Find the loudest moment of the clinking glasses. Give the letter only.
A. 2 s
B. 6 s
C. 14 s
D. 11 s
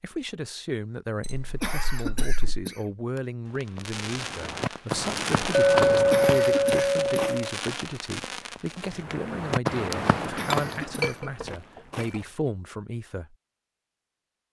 B.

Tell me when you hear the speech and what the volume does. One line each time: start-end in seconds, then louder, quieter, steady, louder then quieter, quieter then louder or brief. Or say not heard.
0.0-13.3 steady.